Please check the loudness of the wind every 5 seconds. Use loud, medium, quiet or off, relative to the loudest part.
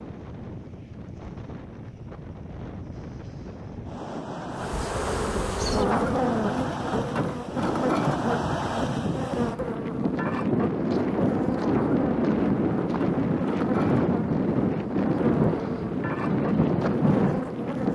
quiet, medium, loud, loud.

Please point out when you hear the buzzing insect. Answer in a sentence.
You can hear the buzzing insect from 4.5 to 17.9 s.